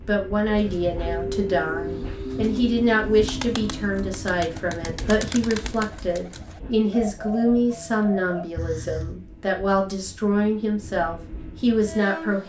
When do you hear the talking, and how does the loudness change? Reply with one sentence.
You can hear the talking from 0.1 to 12.4 s, at a steady volume.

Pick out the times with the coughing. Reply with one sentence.
The coughing can be heard from 8.6 to 9.2 s.